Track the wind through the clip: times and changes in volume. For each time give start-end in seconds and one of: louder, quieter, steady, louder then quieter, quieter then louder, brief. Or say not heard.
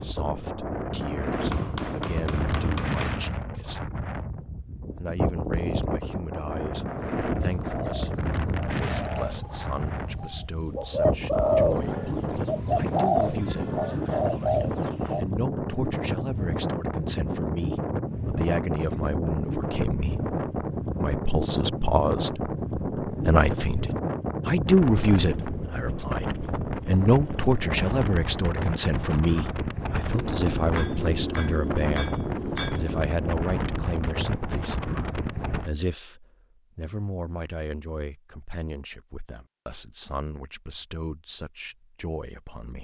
0.0-35.7 steady.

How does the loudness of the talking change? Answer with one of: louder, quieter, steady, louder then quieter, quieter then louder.
louder then quieter.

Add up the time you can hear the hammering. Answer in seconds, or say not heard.
5 s.